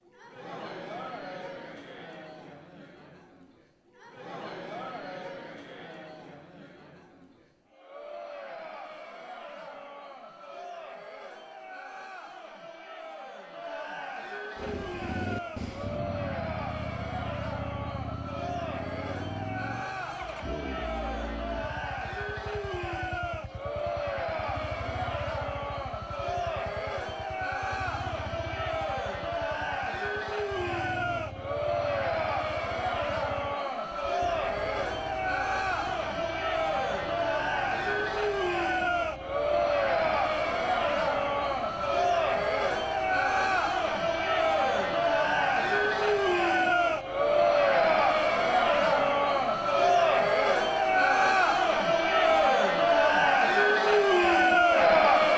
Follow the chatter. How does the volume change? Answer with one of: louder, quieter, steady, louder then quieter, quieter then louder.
louder.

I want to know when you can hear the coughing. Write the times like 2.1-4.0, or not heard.
not heard.